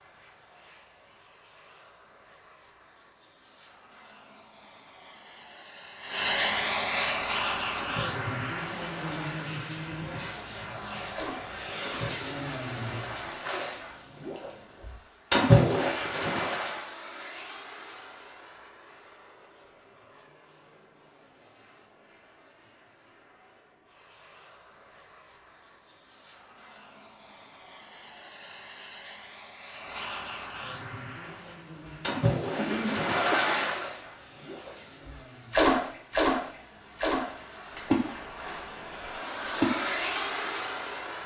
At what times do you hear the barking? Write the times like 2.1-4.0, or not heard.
not heard.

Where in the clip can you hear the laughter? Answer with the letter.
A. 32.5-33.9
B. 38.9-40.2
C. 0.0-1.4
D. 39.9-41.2
A.